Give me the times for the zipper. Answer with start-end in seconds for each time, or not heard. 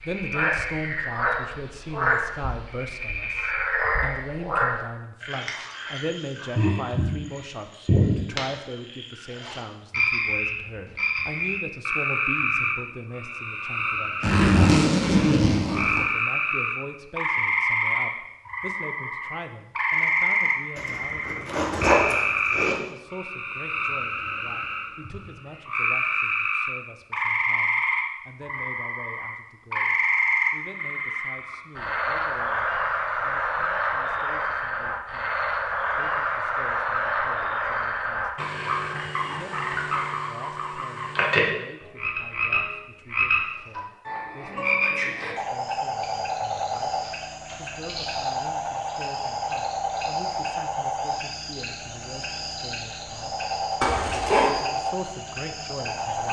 14.2-16.1, 20.8-22.8, 53.8-54.5.